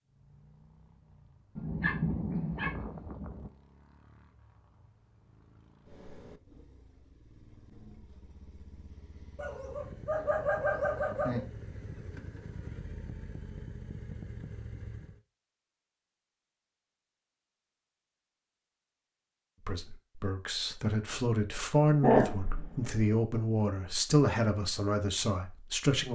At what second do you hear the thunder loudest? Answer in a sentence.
The volume of the thunder peaks at 2 seconds.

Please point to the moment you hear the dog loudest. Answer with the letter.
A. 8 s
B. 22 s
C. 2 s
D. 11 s
B.